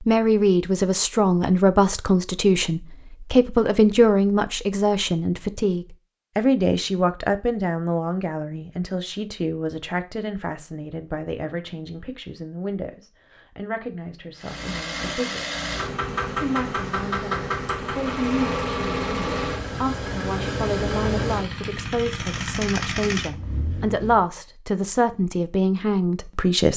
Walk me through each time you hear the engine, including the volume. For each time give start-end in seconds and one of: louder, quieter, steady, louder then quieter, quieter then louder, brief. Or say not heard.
14.3-24.2 steady.